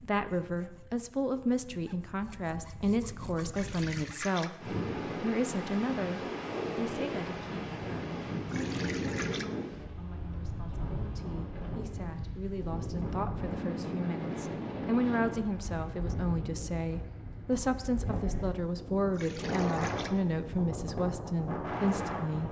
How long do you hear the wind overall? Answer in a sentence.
You can hear the wind for 18 seconds altogether.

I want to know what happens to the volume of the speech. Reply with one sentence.
The volume of the speech goes down, then up.